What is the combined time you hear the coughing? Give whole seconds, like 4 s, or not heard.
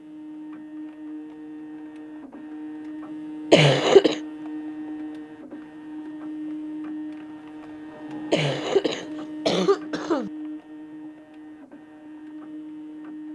3 s.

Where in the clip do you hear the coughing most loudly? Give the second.
4 s.